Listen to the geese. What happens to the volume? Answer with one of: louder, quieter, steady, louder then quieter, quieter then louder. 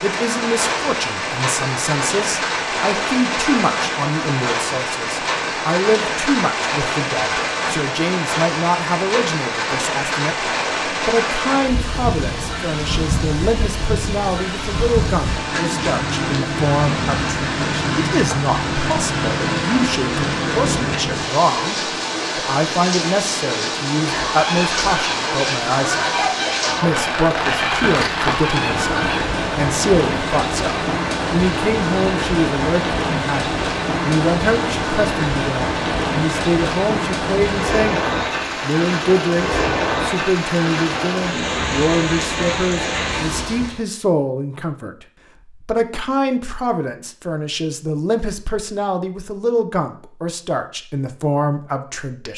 steady.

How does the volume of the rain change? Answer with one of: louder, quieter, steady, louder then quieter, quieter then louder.
steady.